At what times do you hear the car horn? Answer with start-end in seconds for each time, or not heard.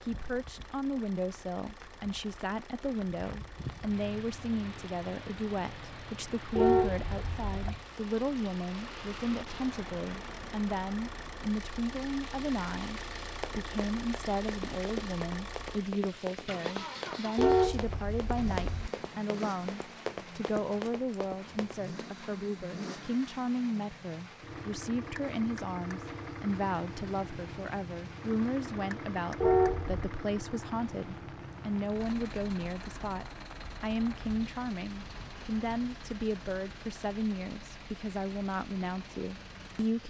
6.5-7.8, 17.4-18.9, 29.4-30.1.